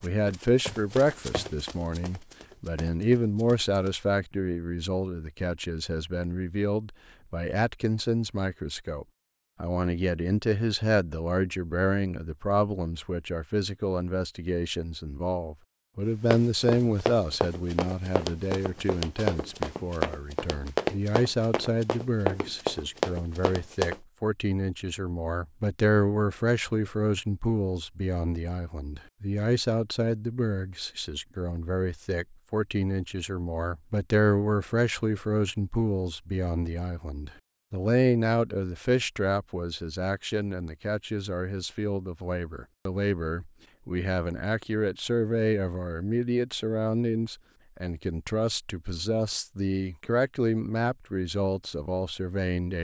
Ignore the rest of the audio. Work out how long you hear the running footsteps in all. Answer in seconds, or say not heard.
12 s.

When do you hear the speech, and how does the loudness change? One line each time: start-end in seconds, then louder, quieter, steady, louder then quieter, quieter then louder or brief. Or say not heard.
0.0-52.7 steady.